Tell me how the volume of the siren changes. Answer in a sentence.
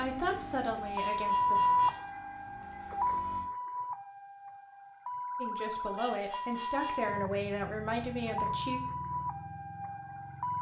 The volume of the siren goes down.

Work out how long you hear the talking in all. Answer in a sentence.
You can hear the talking for 5 seconds altogether.